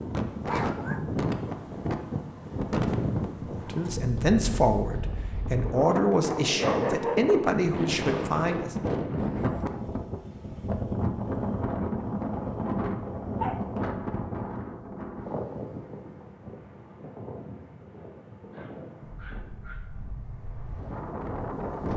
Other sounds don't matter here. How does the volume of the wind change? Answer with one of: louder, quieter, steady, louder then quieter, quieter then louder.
quieter.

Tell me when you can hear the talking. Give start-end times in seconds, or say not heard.
3.5-8.8.